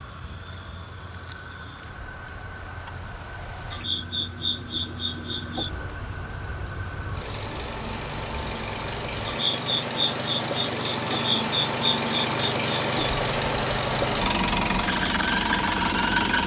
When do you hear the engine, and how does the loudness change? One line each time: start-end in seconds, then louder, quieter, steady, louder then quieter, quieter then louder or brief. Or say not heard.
0.0-16.4 louder.